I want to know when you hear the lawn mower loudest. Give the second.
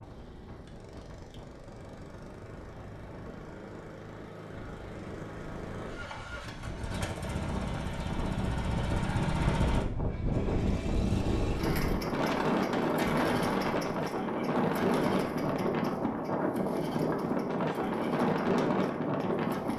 9 s.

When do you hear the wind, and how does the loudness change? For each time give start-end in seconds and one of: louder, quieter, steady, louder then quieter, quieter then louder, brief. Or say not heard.
0.0-19.7 louder.